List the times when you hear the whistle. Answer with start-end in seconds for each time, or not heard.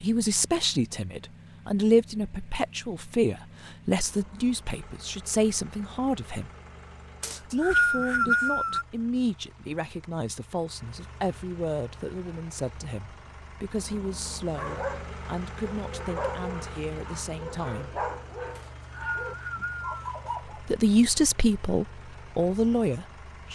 7.2-8.8, 18.6-20.1.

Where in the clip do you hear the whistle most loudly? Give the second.
8 s.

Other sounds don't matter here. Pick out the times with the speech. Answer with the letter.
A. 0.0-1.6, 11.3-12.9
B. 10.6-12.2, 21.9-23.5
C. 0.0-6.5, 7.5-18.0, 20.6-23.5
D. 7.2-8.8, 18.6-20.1
C.